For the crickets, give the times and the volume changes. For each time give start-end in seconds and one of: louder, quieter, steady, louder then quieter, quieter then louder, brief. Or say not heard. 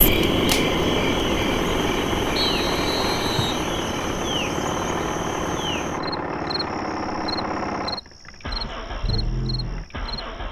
0.0-10.4 quieter.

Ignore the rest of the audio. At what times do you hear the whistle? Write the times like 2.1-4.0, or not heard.
2.4-3.6.